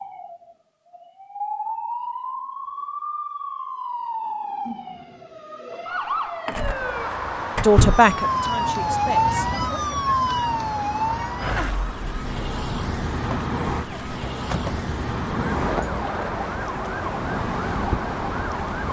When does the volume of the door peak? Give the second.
8 s.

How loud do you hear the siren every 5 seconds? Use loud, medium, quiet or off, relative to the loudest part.
medium, loud, loud, medium.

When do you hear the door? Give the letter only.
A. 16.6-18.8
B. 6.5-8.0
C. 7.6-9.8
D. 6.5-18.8
B.